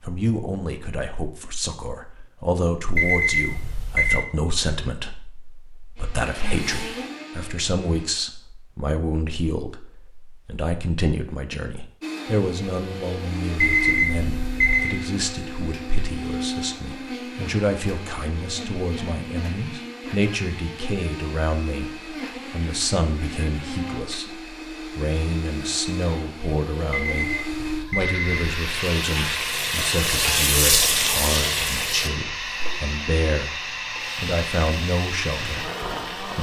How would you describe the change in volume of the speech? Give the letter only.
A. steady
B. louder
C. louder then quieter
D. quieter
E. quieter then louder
A.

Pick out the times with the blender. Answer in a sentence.
You can hear the blender from 6.0 to 8.1 s and from 12.0 to 36.3 s.